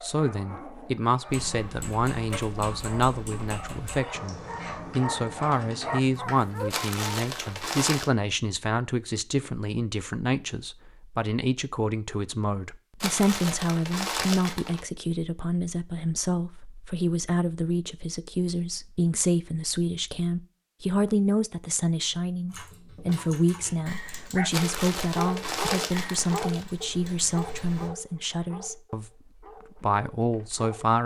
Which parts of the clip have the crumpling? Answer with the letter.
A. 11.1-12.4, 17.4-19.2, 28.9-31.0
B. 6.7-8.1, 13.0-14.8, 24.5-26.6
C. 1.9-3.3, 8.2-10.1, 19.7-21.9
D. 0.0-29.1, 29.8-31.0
B.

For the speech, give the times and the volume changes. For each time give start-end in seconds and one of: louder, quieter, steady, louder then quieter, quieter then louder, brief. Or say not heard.
0.0-29.1 steady
29.8-31.0 brief.